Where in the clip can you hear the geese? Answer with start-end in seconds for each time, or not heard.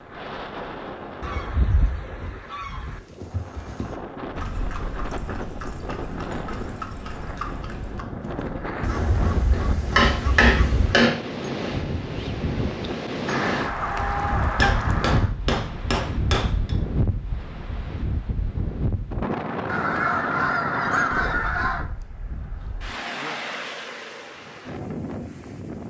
1.2-3.0, 8.8-11.0, 13.2-15.3, 19.6-21.9.